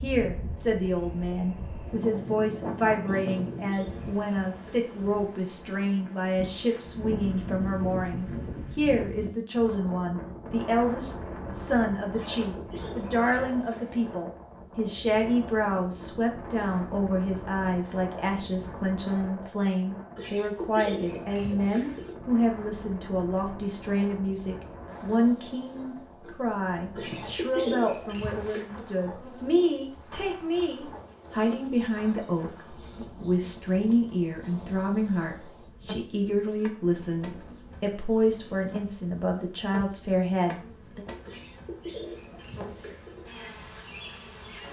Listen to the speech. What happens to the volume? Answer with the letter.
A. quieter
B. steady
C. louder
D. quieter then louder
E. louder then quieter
B.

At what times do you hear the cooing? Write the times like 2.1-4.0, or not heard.
3.0-4.9, 12.1-14.1, 20.1-22.1, 26.9-28.6, 41.2-43.2.